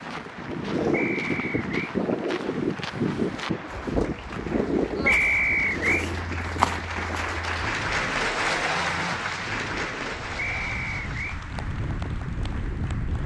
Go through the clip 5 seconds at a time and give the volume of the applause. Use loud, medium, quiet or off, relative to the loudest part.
quiet, loud, medium.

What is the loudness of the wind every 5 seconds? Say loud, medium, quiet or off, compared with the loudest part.
loud, medium, medium.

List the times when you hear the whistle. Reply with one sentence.
You can hear the whistle from 0.9 to 1.7 s, from 5.0 to 6.0 s and from 10.3 to 11.4 s.